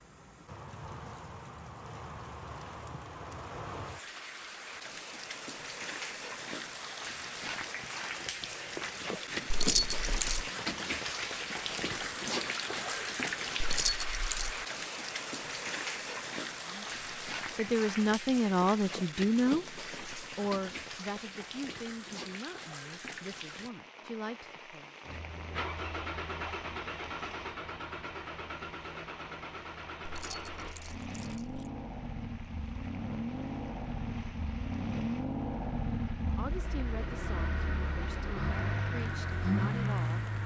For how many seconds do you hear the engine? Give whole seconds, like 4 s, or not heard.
15 s.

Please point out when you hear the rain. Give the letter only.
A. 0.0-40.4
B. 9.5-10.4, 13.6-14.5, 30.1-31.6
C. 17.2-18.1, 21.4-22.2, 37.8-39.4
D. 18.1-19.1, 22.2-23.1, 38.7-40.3
A.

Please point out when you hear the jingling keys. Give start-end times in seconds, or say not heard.
9.5-10.4, 13.6-14.5, 30.1-31.6.